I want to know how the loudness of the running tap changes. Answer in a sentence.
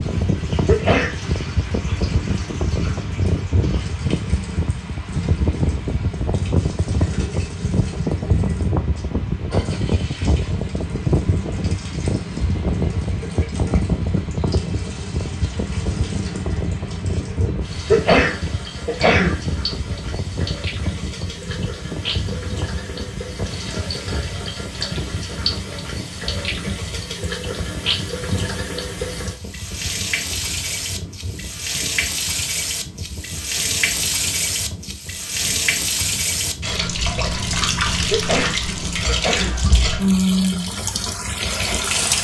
The loudness of the running tap goes up.